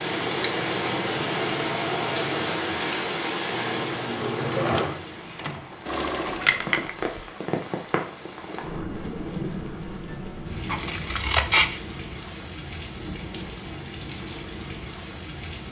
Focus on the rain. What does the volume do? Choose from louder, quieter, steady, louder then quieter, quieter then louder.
quieter.